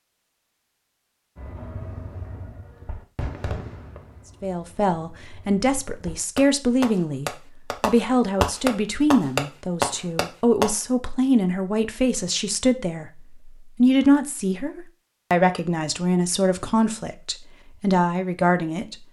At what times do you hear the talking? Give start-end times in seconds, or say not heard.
4.4-19.0.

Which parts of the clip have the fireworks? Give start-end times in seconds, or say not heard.
1.4-10.8.